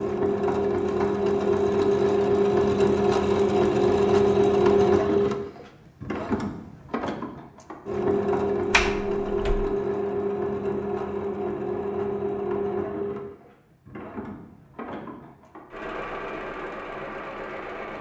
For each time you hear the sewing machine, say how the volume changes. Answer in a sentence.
The sewing machine can be heard from 0.0 to 17.9 s, getting quieter.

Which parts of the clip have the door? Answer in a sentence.
The door can be heard from 8.7 to 9.7 s.